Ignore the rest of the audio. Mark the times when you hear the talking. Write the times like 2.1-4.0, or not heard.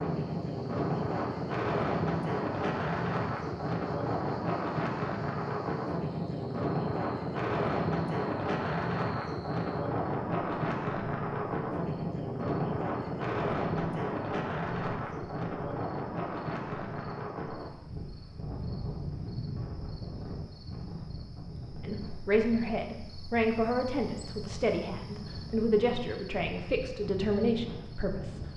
21.8-28.4.